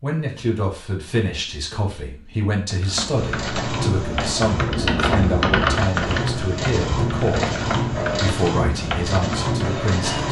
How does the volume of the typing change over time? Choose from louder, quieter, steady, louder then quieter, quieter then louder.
louder then quieter.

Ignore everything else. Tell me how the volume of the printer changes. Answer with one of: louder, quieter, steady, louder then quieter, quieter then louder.
quieter then louder.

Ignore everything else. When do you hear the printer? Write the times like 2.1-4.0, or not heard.
3.1-10.2.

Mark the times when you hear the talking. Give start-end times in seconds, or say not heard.
0.0-10.2.